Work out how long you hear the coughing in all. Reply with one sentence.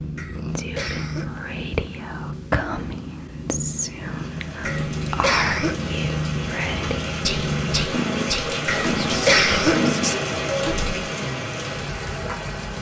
You can hear the coughing for 3 seconds altogether.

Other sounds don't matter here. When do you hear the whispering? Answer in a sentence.
The whispering can be heard from 0.5 to 10.2 s.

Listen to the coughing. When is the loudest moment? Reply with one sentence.
The loudest moment of the coughing is at 9 seconds.